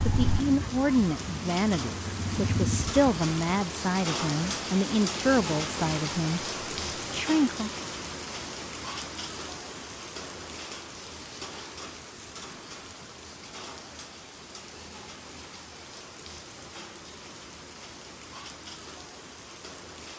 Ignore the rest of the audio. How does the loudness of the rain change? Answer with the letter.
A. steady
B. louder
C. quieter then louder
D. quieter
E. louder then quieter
D.